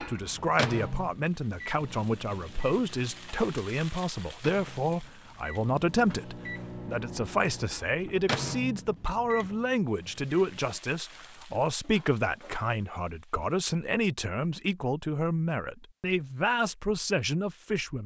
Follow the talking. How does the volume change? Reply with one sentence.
The loudness of the talking stays about the same.